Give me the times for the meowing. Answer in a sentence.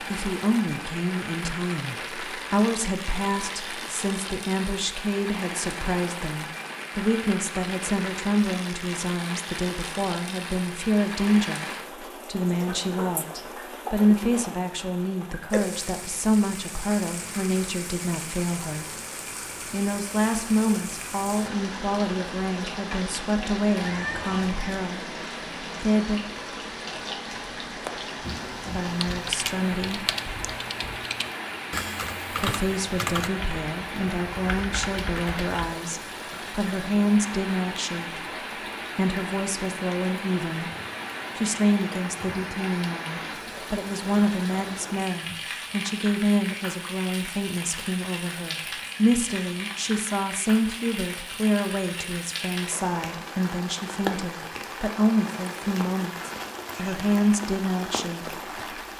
You can hear the meowing from 23.8 to 24.9 s.